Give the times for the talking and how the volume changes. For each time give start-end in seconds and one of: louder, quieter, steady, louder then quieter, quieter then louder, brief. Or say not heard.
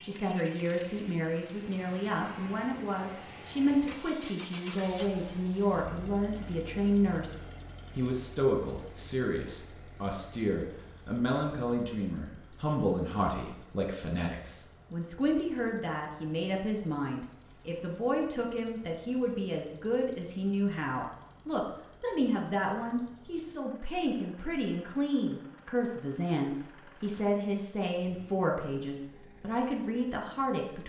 0.0-30.8 steady.